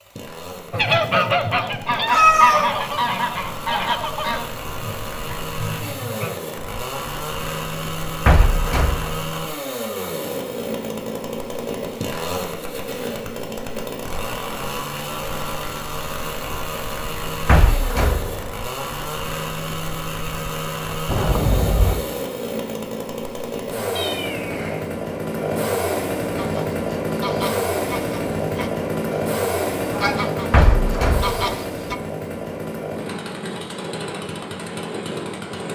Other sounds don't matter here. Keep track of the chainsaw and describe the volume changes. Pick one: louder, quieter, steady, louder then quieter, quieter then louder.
louder.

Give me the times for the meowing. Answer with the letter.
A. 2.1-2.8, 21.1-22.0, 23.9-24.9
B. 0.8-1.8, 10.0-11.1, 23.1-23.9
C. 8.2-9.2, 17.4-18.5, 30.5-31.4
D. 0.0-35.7
A.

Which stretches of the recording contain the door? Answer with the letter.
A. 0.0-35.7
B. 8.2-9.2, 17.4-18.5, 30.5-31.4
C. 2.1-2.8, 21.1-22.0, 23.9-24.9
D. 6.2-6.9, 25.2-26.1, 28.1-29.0
B.